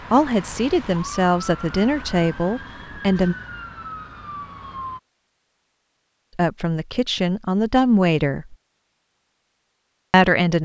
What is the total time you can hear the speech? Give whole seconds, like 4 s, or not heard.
6 s.